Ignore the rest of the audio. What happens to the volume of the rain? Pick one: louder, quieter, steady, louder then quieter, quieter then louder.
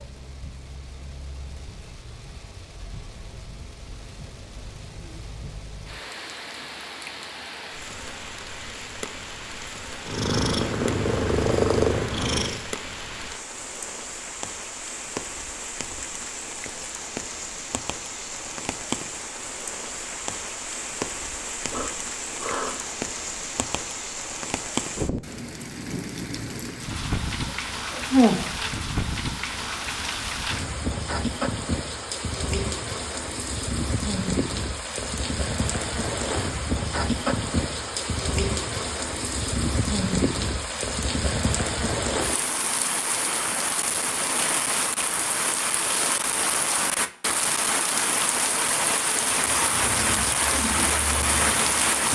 louder.